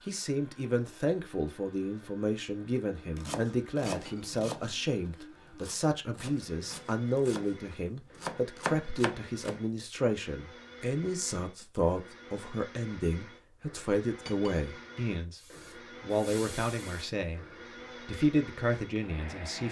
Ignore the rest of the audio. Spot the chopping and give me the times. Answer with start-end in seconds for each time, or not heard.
3.1-9.6.